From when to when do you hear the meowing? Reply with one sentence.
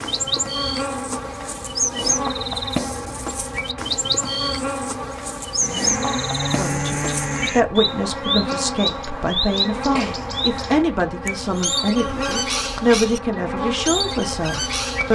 You can't hear the meowing here.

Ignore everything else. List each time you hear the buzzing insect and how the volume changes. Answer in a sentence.
You can hear the buzzing insect from 0.0 to 15.1 s, at a steady volume.